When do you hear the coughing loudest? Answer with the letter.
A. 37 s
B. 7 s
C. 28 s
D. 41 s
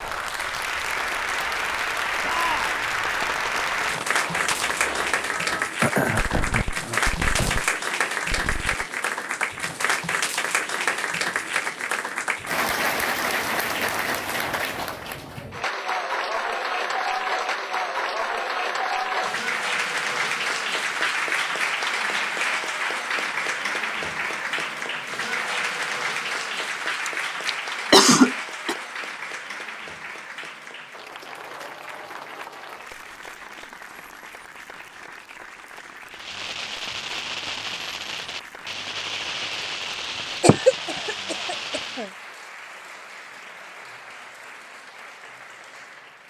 C.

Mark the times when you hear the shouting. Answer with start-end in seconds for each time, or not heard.
2.2-2.9.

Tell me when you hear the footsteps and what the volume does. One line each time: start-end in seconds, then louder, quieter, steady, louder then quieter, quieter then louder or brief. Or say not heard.
not heard.